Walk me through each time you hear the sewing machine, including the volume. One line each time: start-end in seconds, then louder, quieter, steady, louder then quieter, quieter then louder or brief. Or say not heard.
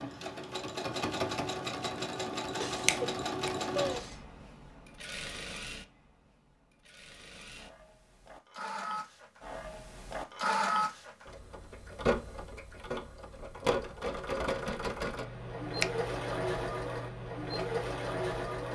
0.0-18.6 quieter then louder.